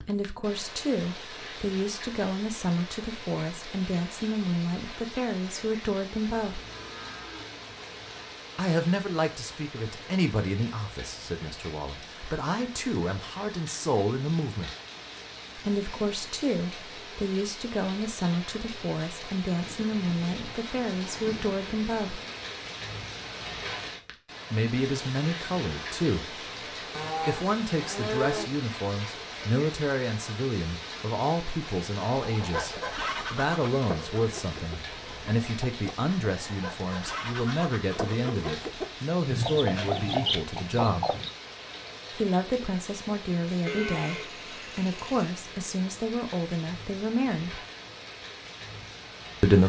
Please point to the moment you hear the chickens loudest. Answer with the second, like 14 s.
40 s.